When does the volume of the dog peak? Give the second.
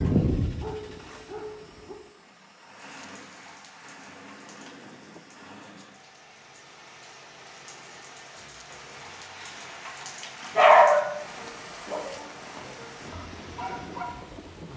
11 s.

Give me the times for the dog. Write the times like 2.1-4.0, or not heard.
0.0-1.9, 8.8-11.1, 11.8-14.1.